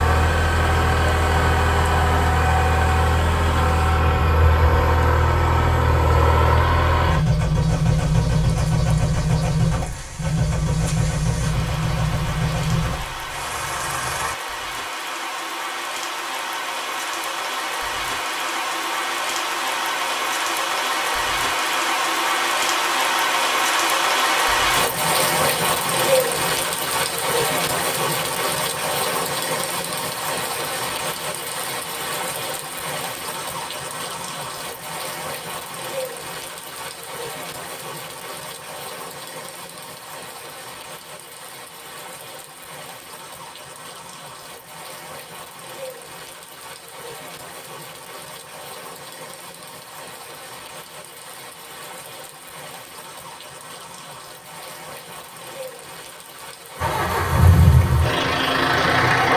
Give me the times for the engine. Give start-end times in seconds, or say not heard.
0.0-14.3, 56.8-59.3.